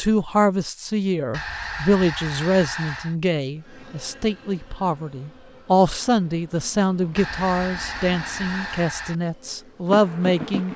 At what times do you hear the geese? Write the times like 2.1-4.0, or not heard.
1.3-3.1, 7.2-9.2.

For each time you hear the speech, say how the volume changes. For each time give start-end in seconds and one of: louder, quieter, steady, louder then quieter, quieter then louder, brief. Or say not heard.
0.0-10.7 steady.